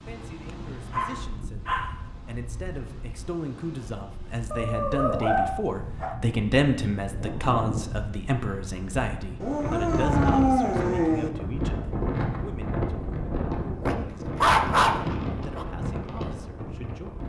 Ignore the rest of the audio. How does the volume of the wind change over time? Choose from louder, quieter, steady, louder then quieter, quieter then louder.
louder.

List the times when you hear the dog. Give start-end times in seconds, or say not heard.
0.9-1.9, 4.5-6.2, 9.4-11.3, 13.8-15.7.